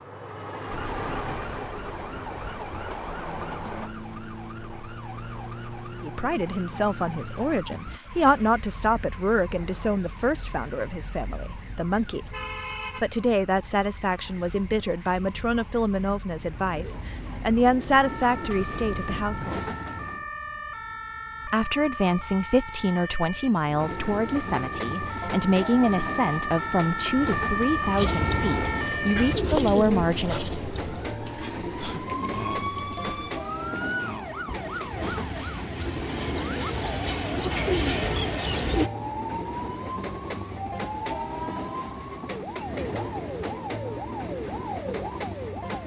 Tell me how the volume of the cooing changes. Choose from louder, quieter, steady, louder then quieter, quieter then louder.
quieter then louder.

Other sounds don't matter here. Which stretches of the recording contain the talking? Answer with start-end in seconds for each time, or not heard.
6.0-12.3, 12.9-19.6, 21.4-30.4.